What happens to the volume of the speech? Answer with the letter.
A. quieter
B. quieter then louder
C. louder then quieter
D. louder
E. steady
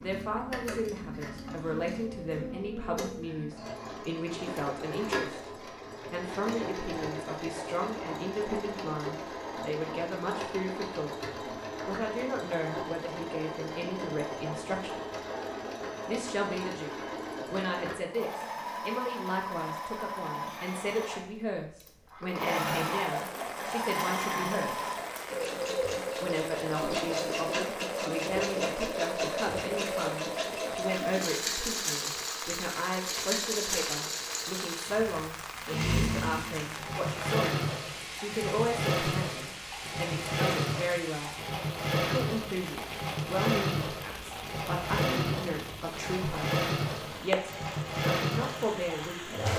E.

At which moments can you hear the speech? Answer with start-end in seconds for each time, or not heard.
0.0-5.4, 6.1-11.2, 11.8-15.0, 16.1-24.9, 26.2-41.4, 42.0-49.4.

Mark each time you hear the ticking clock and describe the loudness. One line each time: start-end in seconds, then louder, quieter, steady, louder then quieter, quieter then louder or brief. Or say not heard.
not heard.